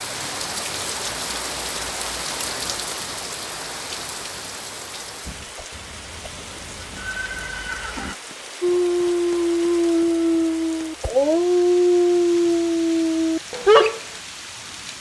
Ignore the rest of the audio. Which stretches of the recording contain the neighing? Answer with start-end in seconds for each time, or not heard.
5.7-8.2.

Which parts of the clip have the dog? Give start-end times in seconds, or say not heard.
8.6-14.1.